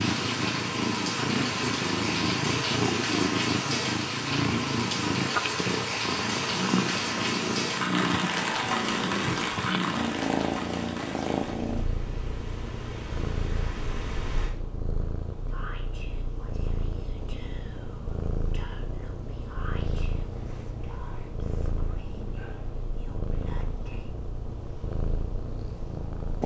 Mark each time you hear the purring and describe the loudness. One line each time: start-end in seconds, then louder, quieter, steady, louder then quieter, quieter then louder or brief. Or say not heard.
0.0-26.4 quieter.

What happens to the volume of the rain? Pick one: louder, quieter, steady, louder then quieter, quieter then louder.
quieter.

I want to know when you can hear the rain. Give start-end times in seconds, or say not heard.
0.0-14.6.